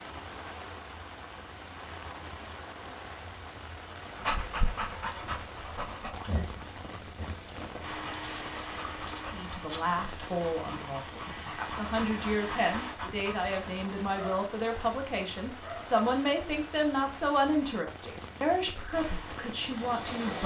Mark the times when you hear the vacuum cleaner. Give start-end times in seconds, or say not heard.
7.8-13.0, 18.9-20.4.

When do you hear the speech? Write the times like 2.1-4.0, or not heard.
9.3-20.4.